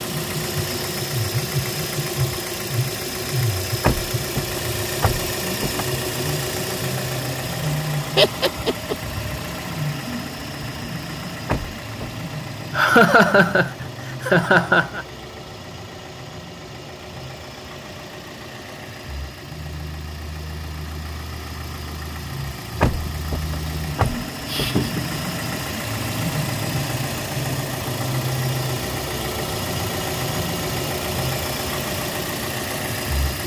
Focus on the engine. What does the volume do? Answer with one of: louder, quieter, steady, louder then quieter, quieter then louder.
quieter then louder.